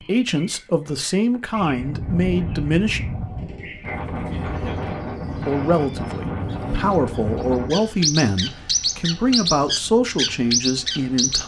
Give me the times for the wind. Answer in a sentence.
You can hear the wind from 1.6 to 11.4 s.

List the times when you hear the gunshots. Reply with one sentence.
You can hear the gunshots from 3.4 to 4.0 s.